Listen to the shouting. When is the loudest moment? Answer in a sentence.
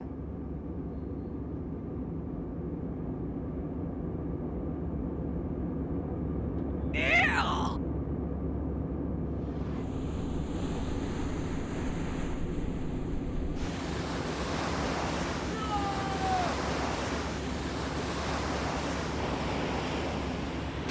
The volume of the shouting peaks at 7 seconds.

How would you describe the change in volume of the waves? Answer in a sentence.
The loudness of the waves goes up.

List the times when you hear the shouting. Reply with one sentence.
The shouting can be heard from 6.9 to 7.8 s and from 15.5 to 16.4 s.